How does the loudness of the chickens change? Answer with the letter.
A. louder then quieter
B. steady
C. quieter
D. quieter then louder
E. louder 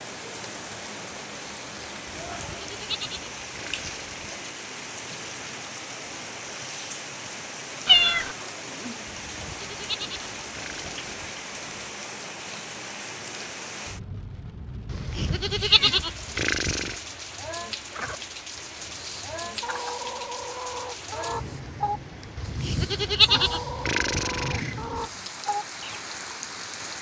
E.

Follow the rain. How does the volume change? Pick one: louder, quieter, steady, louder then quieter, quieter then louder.
steady.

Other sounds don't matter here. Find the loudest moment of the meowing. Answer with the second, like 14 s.
8 s.